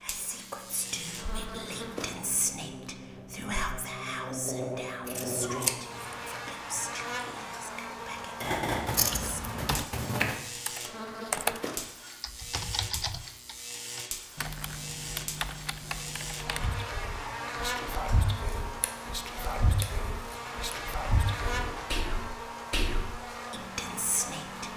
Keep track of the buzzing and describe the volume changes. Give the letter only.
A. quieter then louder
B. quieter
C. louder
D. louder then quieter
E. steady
E.